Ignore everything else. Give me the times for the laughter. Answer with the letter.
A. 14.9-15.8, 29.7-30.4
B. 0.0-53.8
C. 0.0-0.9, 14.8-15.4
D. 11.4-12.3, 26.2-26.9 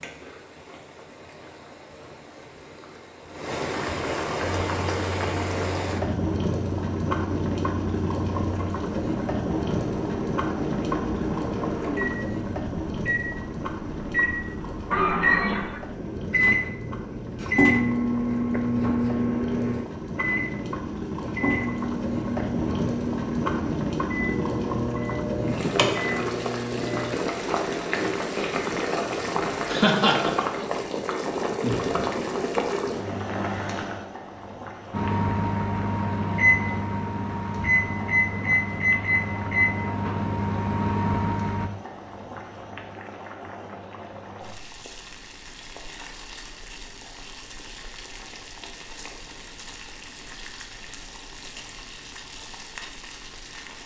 A.